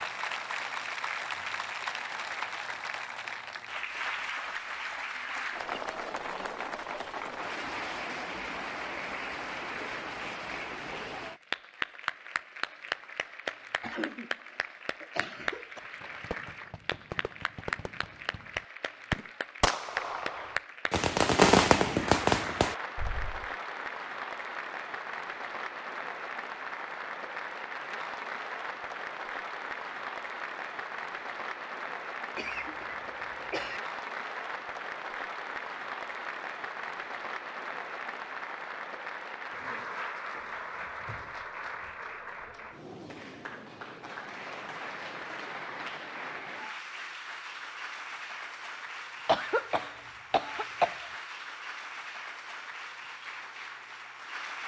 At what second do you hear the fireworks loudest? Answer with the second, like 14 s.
22 s.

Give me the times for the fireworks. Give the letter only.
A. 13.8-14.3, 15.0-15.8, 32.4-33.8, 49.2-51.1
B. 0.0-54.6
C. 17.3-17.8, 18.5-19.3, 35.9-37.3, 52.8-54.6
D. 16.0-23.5
D.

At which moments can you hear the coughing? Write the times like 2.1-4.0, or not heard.
13.8-14.3, 15.0-15.8, 32.4-33.8, 49.2-51.1.